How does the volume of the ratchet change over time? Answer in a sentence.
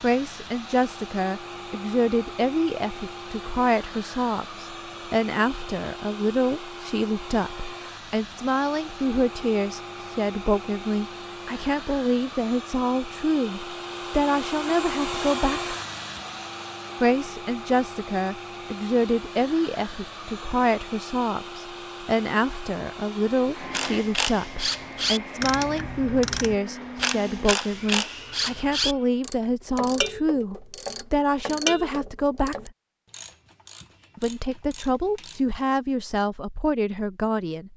The volume of the ratchet goes down.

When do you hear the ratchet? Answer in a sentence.
The ratchet can be heard from 23.7 to 35.5 s.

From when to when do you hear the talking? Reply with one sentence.
You can hear the talking from 0.0 to 15.8 s, from 17.0 to 32.7 s and from 34.1 to 37.7 s.